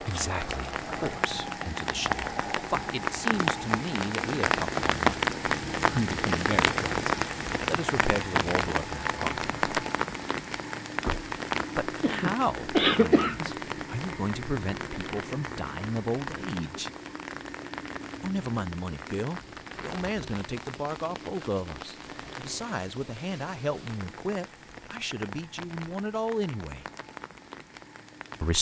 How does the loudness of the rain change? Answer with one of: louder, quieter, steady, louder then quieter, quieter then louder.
quieter.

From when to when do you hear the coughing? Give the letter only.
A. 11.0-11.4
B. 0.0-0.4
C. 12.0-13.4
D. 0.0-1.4
C.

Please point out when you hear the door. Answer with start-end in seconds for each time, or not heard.
11.0-11.4.